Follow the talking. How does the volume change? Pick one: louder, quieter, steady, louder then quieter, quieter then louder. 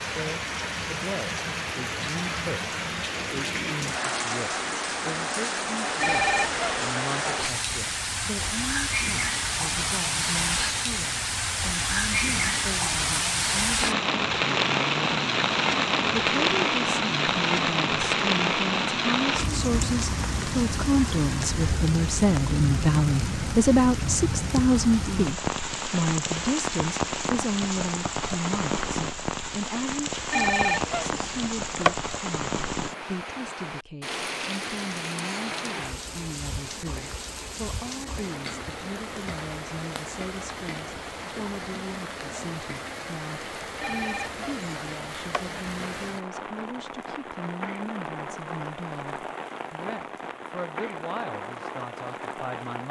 louder then quieter.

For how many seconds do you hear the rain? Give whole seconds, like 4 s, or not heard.
53 s.